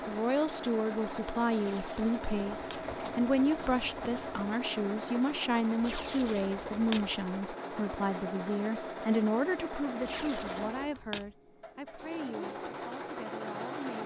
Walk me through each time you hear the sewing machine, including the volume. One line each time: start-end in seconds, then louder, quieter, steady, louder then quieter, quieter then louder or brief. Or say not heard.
0.0-14.0 steady.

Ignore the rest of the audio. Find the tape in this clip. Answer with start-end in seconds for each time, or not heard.
1.6-2.9, 5.8-7.1, 10.0-11.3.